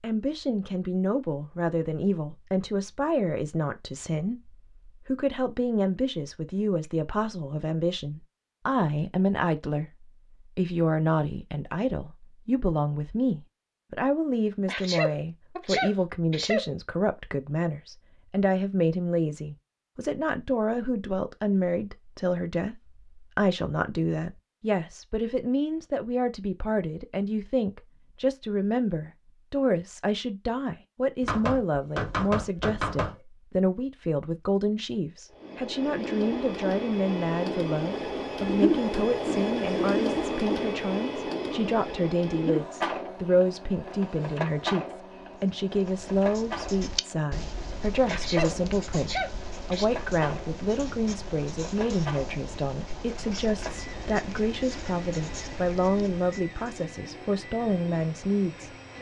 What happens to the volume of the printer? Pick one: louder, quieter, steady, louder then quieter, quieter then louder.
quieter.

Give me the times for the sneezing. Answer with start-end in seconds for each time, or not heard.
14.7-16.6, 48.0-49.9.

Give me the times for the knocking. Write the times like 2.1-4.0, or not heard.
31.2-33.1.